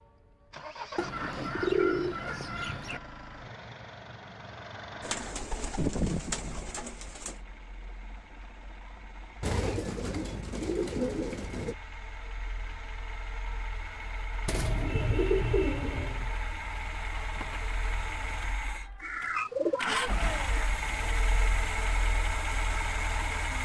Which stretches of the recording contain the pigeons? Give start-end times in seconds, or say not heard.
0.9-3.0, 5.0-7.3, 9.4-11.8, 14.4-16.3, 19.0-20.6.